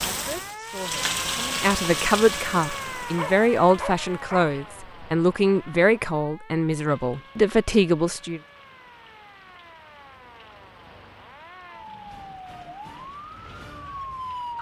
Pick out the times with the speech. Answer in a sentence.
You can hear the speech from 0.1 to 8.4 s.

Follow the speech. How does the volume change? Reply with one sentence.
The loudness of the speech goes up.